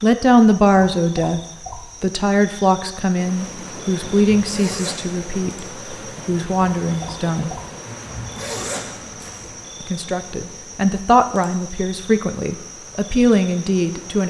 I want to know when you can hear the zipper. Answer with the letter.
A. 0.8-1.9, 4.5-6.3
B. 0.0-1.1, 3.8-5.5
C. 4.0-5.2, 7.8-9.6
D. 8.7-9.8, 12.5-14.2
C.